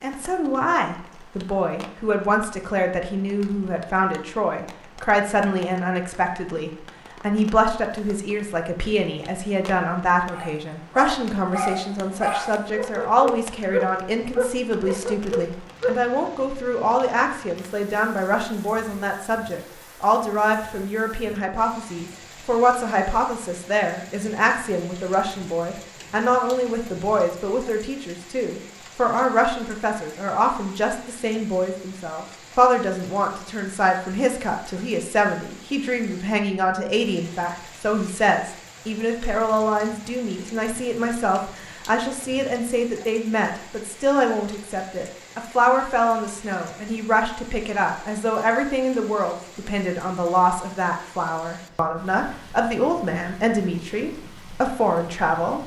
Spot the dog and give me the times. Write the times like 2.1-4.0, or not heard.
10.3-16.0.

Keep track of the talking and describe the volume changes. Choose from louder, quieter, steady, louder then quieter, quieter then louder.
steady.